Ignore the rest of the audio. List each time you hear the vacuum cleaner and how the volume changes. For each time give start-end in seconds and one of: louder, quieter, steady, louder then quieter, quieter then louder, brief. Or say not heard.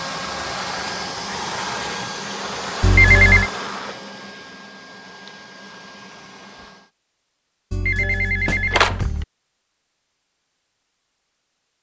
0.0-6.9 quieter.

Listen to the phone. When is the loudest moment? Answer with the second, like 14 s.
3 s.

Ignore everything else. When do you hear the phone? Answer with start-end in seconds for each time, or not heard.
2.8-3.5, 7.7-9.2.